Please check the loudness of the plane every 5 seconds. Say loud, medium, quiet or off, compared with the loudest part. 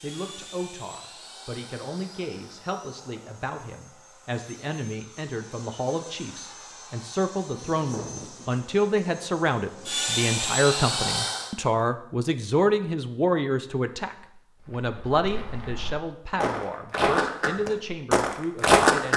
quiet, quiet, loud, off.